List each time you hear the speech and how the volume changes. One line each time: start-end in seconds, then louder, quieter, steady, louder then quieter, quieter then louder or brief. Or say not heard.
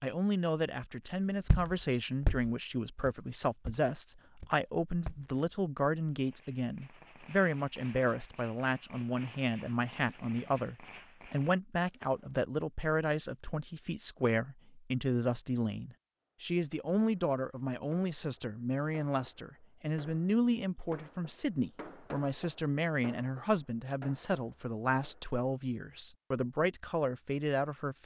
0.0-28.0 steady.